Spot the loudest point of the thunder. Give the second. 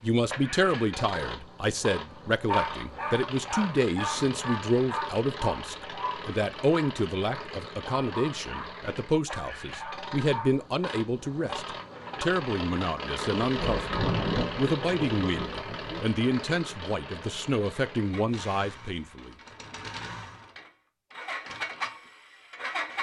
14 s.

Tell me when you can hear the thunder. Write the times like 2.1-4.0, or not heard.
13.4-16.1.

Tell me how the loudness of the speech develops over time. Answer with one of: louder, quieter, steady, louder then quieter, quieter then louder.
steady.